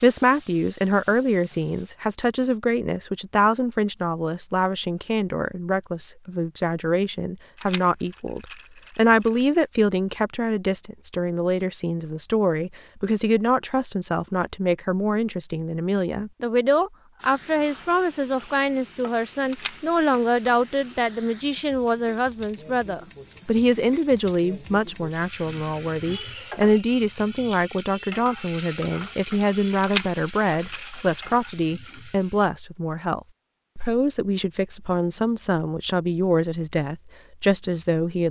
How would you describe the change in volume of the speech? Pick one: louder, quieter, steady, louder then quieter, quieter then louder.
steady.